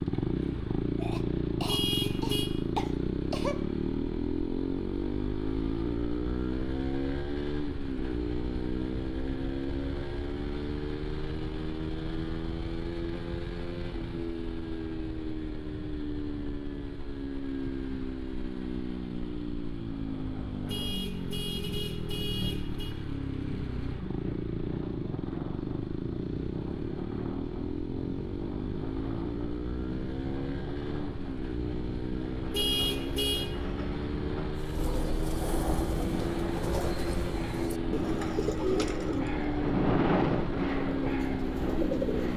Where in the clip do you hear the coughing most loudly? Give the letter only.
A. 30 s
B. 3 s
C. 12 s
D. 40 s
B.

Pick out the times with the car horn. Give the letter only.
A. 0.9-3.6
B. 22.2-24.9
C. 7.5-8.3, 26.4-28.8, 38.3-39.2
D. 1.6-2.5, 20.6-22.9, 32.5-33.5
D.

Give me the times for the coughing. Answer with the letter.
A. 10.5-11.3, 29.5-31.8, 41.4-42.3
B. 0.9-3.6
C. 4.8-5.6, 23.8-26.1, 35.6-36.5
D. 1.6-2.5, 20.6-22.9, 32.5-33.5
B.